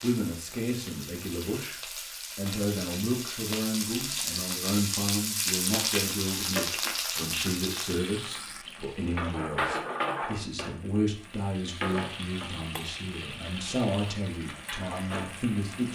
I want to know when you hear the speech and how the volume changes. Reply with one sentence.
You can hear the speech from 0.0 to 15.9 s, at a steady volume.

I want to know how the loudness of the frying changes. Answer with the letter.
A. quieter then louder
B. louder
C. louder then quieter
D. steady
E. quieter
C.